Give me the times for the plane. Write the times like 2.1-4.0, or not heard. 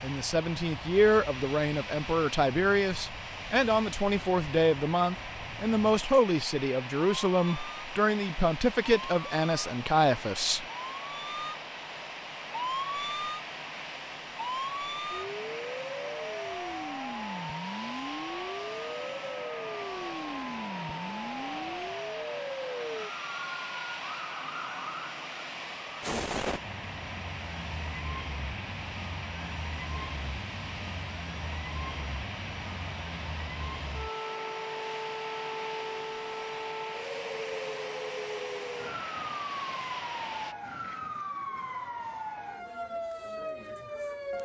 0.0-40.5.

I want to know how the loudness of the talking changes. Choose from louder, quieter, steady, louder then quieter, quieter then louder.
steady.